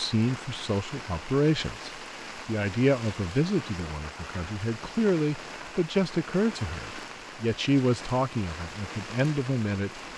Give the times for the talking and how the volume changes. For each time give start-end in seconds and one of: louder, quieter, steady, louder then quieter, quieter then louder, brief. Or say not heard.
0.0-10.0 steady.